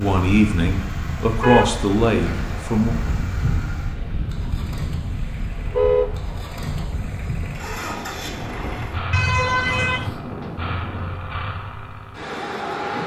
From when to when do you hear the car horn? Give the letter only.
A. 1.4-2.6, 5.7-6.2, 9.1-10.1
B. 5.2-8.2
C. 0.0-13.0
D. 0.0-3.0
A.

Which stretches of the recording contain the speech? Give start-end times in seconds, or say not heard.
0.0-3.0.